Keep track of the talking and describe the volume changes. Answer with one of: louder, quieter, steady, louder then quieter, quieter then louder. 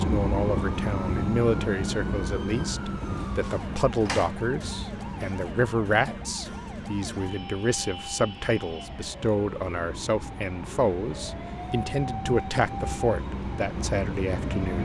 steady.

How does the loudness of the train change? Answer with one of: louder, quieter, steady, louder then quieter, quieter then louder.
quieter then louder.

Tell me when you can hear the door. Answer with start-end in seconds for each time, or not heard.
3.0-4.3.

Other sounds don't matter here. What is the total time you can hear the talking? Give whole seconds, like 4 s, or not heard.
15 s.